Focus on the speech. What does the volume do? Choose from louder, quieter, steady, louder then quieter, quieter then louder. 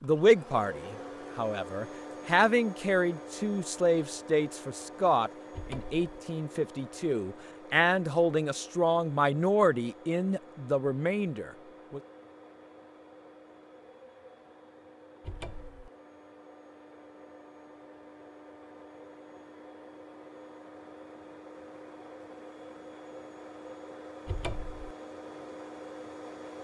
steady.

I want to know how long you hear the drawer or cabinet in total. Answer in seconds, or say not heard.
2 s.